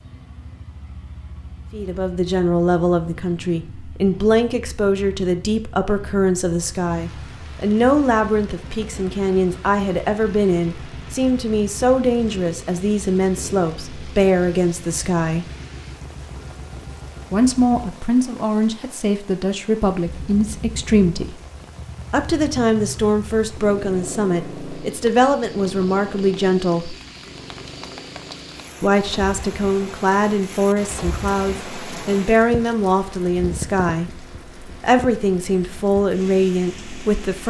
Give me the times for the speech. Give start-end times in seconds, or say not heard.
1.7-15.4, 17.3-21.4, 22.1-26.9, 28.8-37.4.